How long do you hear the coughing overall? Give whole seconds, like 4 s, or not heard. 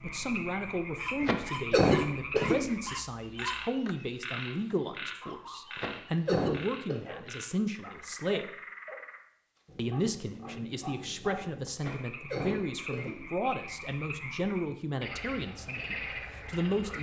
4 s.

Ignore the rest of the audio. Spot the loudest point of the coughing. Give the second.
2 s.